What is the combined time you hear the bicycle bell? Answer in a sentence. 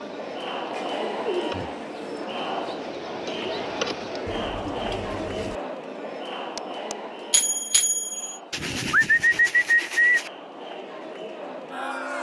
The bicycle bell can be heard for 2 seconds in total.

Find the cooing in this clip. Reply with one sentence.
You can hear the cooing from 0.7 to 2.2 s, from 4.2 to 5.6 s and from 8.5 to 10.3 s.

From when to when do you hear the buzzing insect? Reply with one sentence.
You can hear the buzzing insect from 0.0 to 4.3 s.